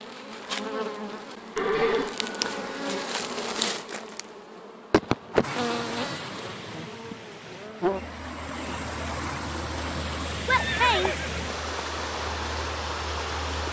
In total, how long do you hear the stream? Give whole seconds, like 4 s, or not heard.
8 s.